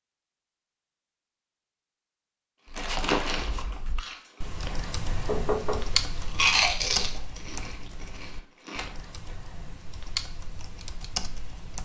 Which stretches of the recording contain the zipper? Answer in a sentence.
The zipper can be heard from 2.9 to 3.6 s.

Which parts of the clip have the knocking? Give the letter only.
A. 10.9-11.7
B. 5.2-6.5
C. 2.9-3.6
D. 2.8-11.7
B.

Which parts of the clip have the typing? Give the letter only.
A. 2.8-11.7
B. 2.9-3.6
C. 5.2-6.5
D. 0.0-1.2
A.